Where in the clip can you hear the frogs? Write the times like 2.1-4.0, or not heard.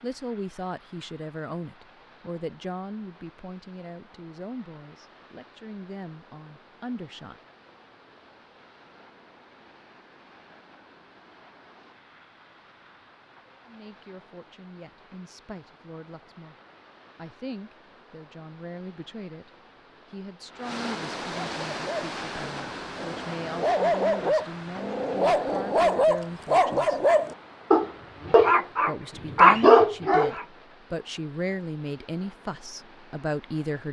not heard.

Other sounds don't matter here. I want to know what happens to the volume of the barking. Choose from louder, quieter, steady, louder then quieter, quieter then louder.
louder.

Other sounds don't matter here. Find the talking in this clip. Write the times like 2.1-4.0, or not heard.
0.0-7.4, 13.7-16.6, 17.1-19.5, 20.1-27.0, 28.8-33.8.